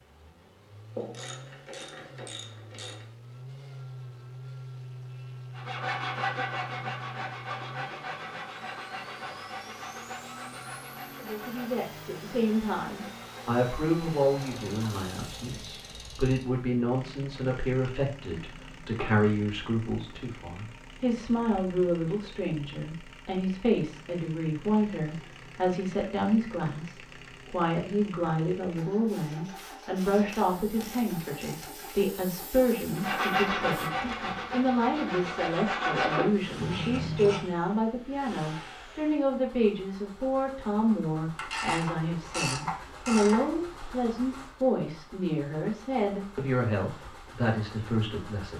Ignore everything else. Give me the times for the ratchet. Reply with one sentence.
The ratchet can be heard from 0.9 to 3.0 s, from 14.3 to 16.4 s, from 30.1 to 31.6 s and from 41.4 to 43.5 s.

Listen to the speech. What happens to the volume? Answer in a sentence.
The volume of the speech stays about the same.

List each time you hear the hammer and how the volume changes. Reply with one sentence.
You can't hear the hammer here.